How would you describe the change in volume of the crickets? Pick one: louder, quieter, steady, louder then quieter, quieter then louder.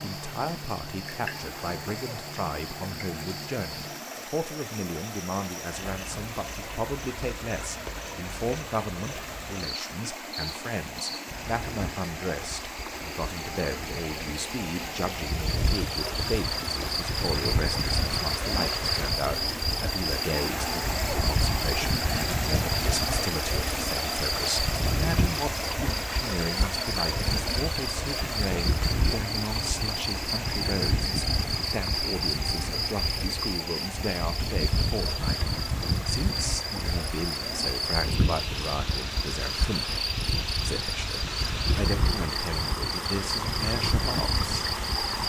louder.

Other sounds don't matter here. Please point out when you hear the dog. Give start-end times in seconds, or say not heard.
not heard.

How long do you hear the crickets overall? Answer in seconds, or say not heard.
45 s.